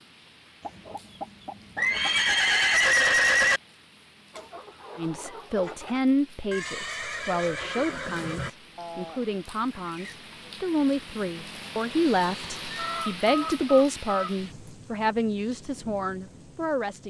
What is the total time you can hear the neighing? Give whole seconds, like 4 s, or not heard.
5 s.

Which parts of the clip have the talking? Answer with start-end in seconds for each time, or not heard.
5.0-17.0.